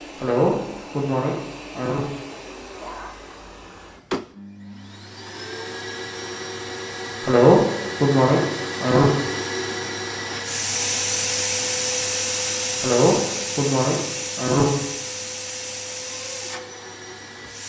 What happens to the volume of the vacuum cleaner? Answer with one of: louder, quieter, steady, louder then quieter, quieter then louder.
louder then quieter.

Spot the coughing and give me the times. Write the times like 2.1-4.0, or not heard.
0.2-2.1, 7.2-9.2, 12.8-14.8.